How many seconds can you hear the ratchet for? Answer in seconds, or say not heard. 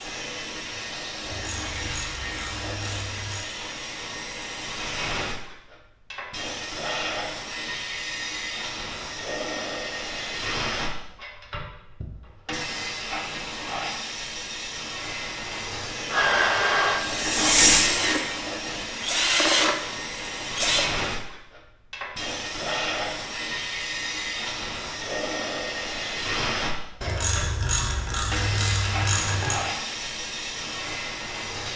5 s.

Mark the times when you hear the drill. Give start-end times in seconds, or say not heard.
16.1-21.0.